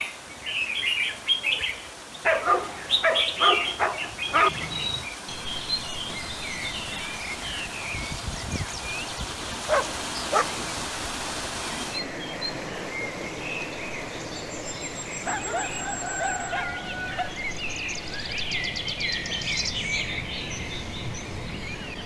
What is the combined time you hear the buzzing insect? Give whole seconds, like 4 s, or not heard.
not heard.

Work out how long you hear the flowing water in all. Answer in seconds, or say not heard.
22 s.